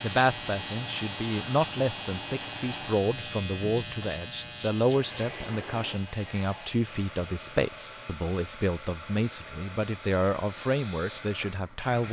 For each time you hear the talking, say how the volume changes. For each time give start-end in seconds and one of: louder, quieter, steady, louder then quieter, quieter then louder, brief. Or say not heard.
0.0-12.0 steady.